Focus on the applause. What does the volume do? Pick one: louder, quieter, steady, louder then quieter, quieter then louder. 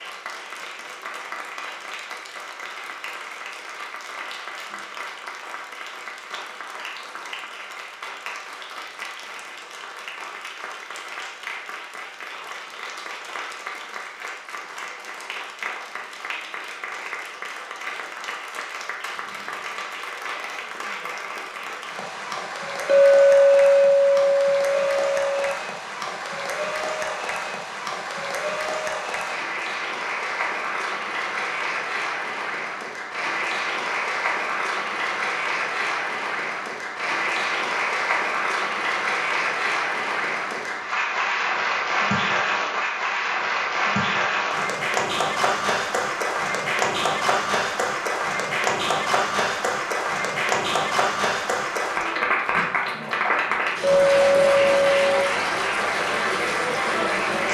louder.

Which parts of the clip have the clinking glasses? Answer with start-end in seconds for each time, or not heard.
22.9-25.6, 53.8-55.3.